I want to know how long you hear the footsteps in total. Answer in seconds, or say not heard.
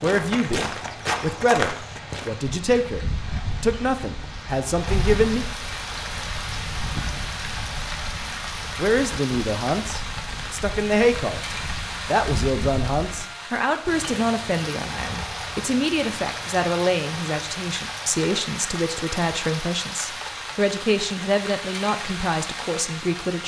2 s.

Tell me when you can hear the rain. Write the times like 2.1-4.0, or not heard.
0.1-23.4.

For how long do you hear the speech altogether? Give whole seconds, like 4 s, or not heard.
20 s.